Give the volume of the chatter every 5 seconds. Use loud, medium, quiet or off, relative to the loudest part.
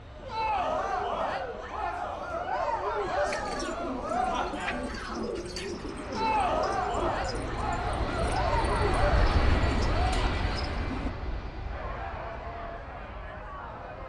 loud, loud, medium.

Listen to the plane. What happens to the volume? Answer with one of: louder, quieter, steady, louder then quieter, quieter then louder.
louder then quieter.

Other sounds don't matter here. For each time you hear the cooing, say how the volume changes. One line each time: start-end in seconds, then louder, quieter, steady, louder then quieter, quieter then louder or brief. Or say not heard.
3.2-11.1 steady.